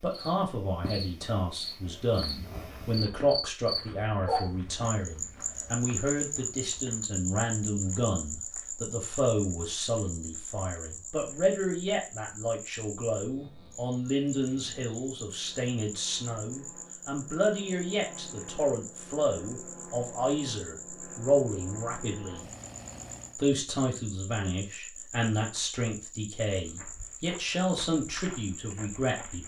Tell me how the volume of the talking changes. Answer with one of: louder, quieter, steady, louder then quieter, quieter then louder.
steady.